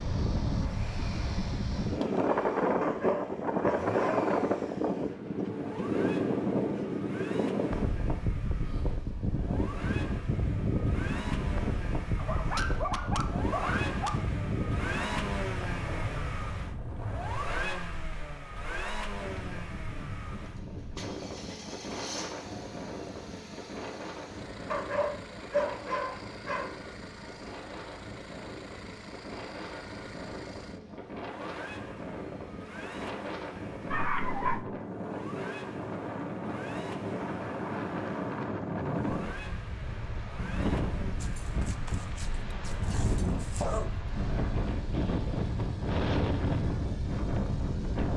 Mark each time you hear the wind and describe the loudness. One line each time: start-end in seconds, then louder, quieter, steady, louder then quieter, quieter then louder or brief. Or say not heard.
0.0-48.1 quieter then louder.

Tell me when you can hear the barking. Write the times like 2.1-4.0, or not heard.
2.8-4.3, 12.2-14.2, 24.7-26.7, 33.9-34.6, 41.2-43.9.